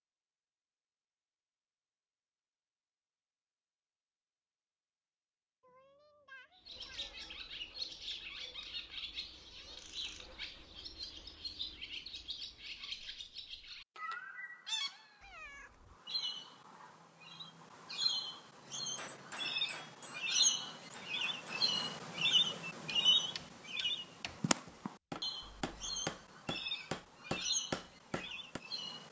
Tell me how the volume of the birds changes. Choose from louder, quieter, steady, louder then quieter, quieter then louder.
louder then quieter.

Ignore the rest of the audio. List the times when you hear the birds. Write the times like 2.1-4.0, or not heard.
6.5-29.0.